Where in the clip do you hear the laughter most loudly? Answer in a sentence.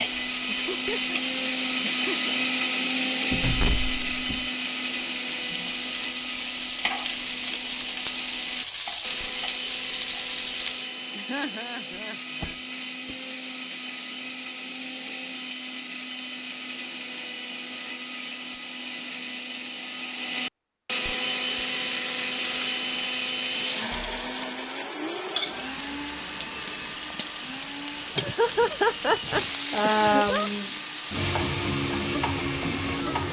The volume of the laughter peaks at 29 seconds.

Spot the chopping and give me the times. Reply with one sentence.
The chopping can't be heard in this clip.